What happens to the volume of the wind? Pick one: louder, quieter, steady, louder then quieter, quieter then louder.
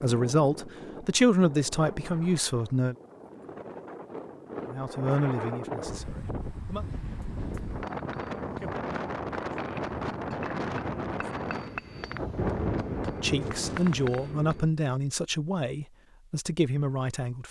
louder.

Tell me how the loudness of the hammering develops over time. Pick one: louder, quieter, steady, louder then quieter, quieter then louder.
louder.